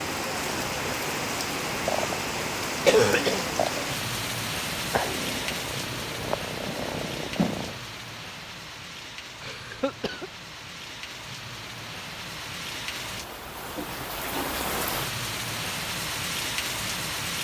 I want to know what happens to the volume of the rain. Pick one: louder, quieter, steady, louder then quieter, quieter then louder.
quieter then louder.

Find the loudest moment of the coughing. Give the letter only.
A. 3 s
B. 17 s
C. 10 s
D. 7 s
A.